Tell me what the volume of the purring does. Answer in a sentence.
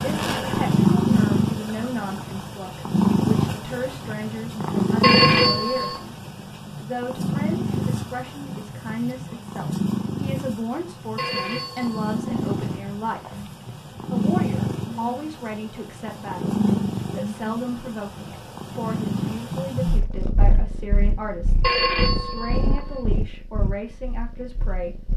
The volume of the purring goes down.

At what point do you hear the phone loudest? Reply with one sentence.
The loudest moment of the phone is at 5 seconds.